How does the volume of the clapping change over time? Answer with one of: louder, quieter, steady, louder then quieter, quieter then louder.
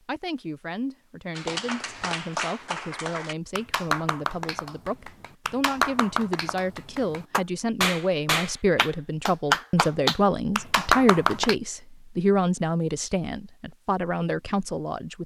louder.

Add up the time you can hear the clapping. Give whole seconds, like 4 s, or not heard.
10 s.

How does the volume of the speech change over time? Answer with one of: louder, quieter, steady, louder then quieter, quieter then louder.
louder.